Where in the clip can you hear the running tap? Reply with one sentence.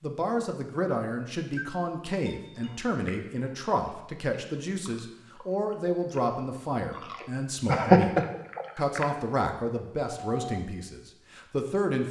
You can't hear the running tap here.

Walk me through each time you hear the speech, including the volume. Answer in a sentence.
The speech can be heard from 0.0 to 12.0 s, at a steady volume.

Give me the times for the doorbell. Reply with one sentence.
The doorbell can be heard from 1.5 to 2.8 s and from 10.2 to 10.6 s.